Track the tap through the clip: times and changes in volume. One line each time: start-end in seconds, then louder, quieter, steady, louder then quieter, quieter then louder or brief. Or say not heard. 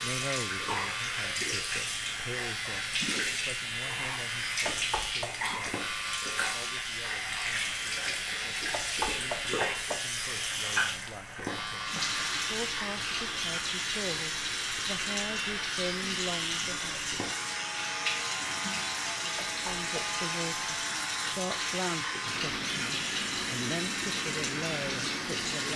0.0-25.7 steady.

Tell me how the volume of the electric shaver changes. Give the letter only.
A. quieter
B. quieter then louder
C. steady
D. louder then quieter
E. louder
C.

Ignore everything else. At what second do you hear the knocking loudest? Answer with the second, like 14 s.
9 s.